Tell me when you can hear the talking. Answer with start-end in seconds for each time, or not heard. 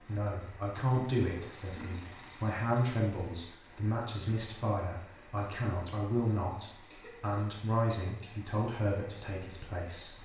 0.0-10.2.